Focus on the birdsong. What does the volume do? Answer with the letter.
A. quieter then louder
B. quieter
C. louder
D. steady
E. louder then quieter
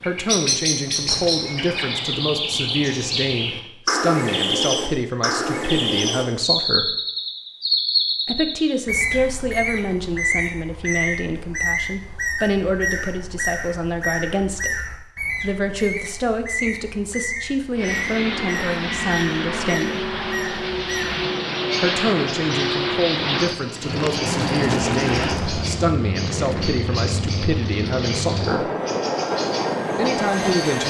B.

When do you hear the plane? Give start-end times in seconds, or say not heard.
17.8-30.8.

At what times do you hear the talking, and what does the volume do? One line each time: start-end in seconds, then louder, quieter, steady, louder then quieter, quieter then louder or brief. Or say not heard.
0.0-7.0 steady
8.2-20.1 steady
21.8-28.7 steady
29.9-30.8 brief.